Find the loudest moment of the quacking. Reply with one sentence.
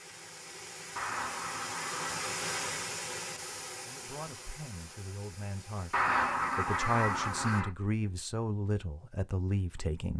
The loudest moment of the quacking is at 6 seconds.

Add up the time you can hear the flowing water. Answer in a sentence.
The flowing water can be heard for 8 seconds in total.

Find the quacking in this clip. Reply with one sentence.
You can hear the quacking from 0.9 to 2.9 s and from 5.9 to 7.7 s.